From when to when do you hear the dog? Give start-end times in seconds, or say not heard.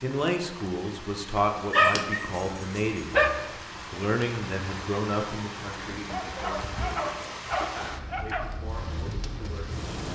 1.7-3.4, 6.0-8.4.